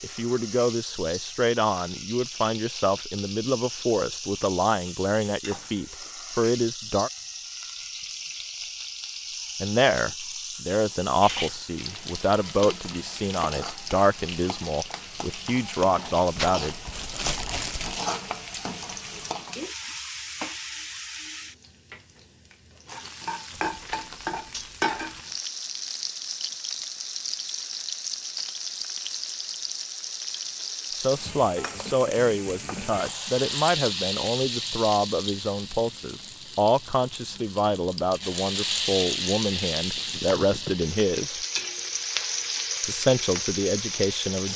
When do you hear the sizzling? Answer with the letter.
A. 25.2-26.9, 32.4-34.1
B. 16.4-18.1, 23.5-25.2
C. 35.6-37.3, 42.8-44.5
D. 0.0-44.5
D.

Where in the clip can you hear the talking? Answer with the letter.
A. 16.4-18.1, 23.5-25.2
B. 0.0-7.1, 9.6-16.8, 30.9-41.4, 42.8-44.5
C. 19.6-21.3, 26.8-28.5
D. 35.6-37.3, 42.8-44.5
B.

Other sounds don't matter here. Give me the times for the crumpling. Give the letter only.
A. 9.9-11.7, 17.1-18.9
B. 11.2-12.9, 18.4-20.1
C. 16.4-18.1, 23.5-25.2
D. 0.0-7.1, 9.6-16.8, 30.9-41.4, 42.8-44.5
C.